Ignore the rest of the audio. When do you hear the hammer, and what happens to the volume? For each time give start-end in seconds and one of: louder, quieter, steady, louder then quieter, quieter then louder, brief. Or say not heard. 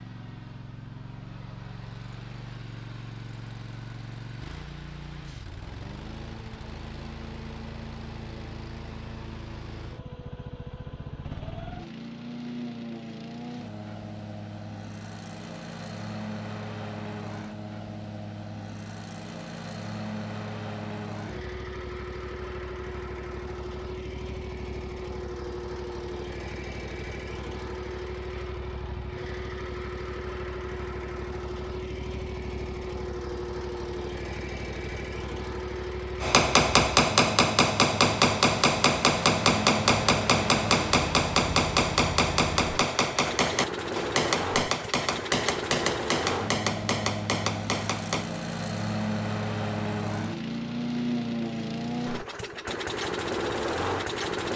36.2-48.2 quieter.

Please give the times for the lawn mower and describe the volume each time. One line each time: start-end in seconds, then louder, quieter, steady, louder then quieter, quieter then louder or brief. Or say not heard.
0.0-54.5 louder.